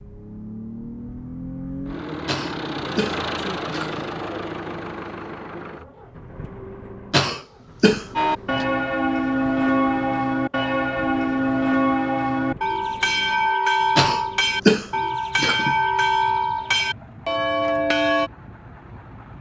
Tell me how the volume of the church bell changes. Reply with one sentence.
The volume of the church bell stays about the same.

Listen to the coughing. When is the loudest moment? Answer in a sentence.
The volume of the coughing peaks at 15 seconds.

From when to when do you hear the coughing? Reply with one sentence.
The coughing can be heard from 2.2 to 4.1 s, from 7.1 to 8.7 s and from 13.9 to 15.8 s.